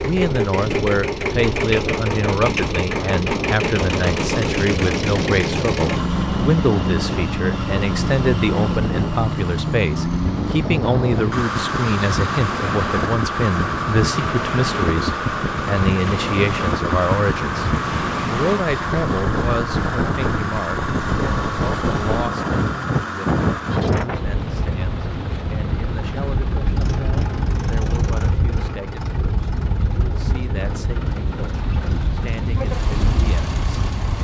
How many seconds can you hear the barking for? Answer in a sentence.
The barking can't be heard in this clip.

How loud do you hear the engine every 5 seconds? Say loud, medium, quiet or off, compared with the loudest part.
loud, loud, loud, loud, medium, medium, medium.